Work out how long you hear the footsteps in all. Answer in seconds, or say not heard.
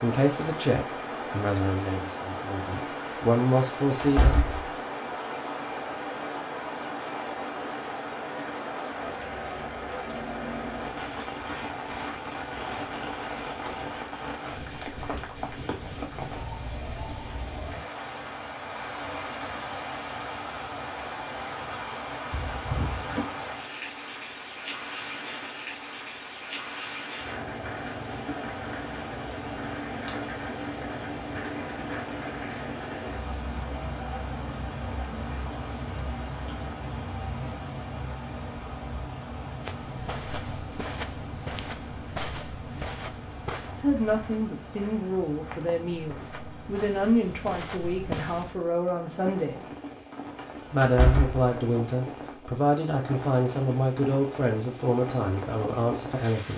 9 s.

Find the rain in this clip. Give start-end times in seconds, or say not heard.
0.0-56.5.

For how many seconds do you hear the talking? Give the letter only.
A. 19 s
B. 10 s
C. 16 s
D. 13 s
C.